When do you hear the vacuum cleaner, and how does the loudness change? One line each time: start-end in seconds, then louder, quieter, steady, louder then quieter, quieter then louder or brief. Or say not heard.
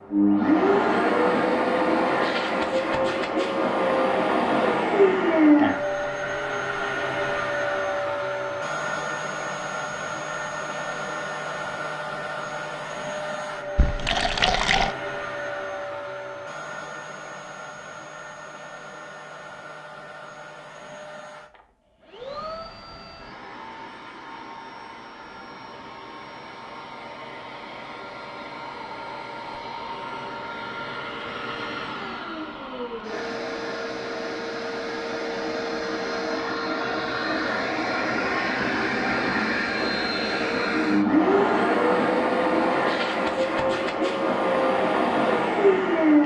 0.1-46.2 quieter then louder.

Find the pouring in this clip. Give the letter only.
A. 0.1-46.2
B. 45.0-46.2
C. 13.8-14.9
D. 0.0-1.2
C.